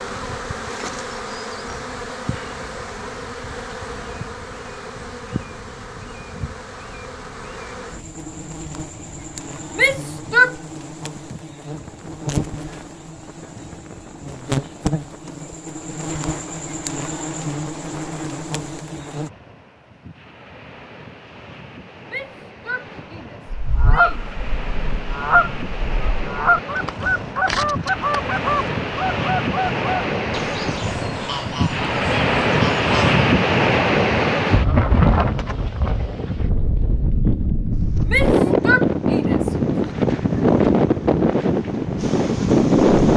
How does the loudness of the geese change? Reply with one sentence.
The loudness of the geese goes down.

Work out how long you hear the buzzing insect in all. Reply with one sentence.
The buzzing insect can be heard for 25 seconds in total.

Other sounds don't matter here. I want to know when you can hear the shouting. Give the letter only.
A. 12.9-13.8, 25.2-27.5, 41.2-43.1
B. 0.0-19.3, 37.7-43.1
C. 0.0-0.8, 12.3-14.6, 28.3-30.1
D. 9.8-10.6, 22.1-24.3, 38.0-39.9
D.